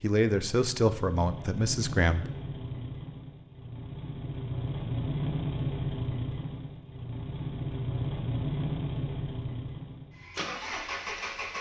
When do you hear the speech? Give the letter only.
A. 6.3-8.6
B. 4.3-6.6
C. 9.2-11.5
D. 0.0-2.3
D.